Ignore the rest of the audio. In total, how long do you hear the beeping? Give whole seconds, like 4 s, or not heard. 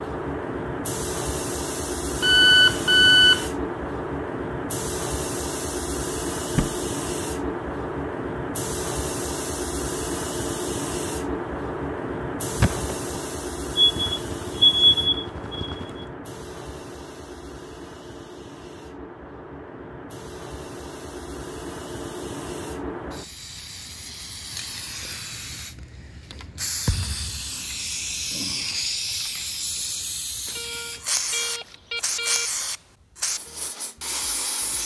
6 s.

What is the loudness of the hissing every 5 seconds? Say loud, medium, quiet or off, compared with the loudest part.
loud, loud, loud, medium, medium, loud, loud.